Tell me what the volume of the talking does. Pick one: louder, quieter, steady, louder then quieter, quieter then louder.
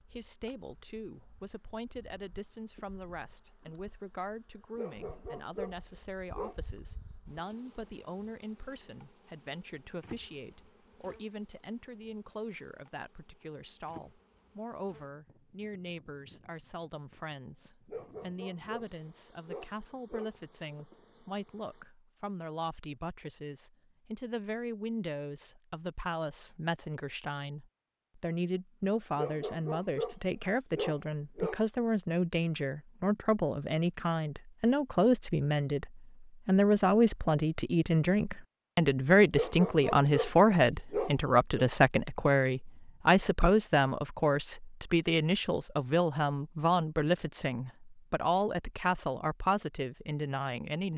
louder.